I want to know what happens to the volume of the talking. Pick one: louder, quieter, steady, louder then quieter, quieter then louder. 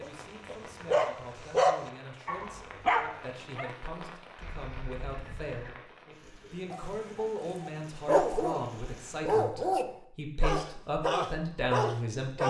louder.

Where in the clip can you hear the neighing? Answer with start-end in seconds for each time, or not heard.
4.4-5.8.